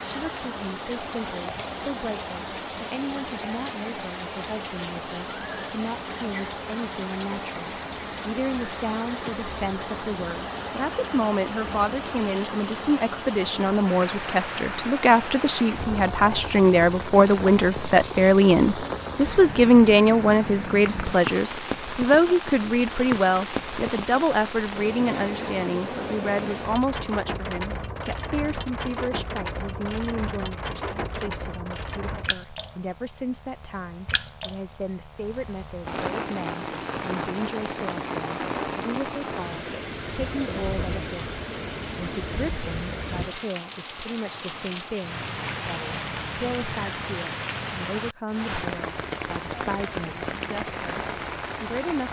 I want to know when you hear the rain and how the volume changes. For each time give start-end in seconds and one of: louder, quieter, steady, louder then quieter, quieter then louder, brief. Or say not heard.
0.0-52.0 steady.